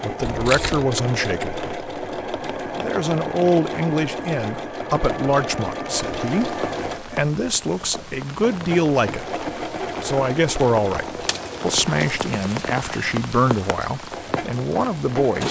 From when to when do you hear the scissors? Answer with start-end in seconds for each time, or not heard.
0.2-0.9.